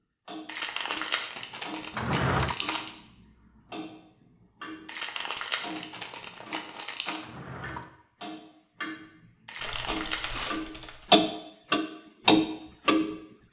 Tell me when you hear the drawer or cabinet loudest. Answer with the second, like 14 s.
2 s.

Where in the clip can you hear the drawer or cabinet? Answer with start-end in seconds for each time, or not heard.
1.9-2.5, 7.2-8.0.